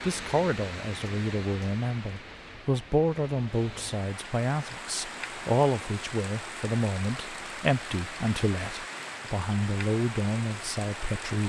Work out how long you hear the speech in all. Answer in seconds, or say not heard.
11 s.